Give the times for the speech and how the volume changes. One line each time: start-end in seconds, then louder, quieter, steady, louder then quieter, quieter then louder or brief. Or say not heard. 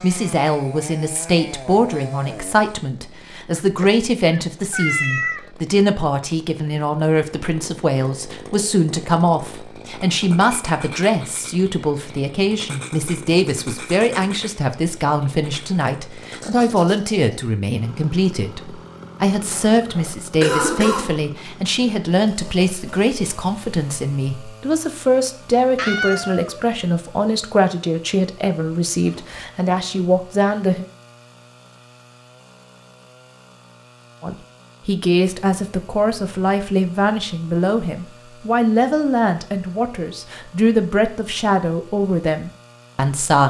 0.0-30.9 steady
34.2-43.4 steady.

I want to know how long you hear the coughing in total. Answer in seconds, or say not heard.
2 s.